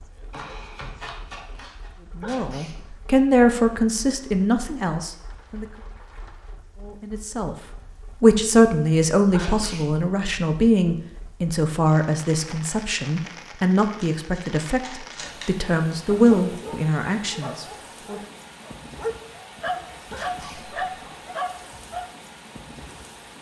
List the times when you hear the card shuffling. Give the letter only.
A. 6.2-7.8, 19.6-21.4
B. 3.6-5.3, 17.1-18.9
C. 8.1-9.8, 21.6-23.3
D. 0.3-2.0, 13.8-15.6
D.